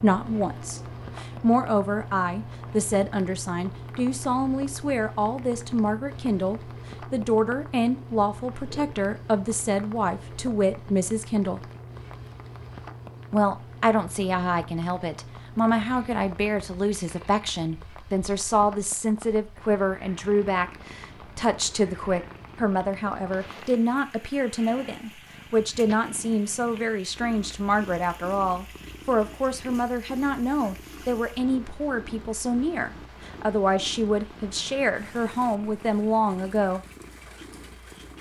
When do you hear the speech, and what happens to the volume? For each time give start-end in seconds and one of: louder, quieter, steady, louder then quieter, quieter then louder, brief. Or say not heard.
0.0-11.7 steady
13.3-36.9 steady.